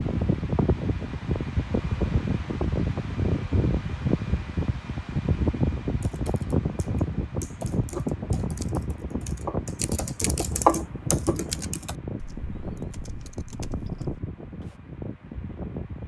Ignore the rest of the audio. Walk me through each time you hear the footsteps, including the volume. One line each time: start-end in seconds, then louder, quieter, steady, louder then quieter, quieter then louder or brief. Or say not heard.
not heard.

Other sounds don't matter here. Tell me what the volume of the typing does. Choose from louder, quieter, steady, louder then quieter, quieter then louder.
louder then quieter.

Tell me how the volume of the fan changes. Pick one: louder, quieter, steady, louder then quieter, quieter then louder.
quieter.